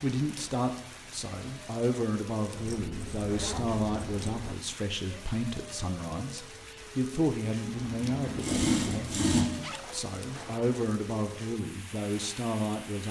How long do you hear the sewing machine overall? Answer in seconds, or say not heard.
2 s.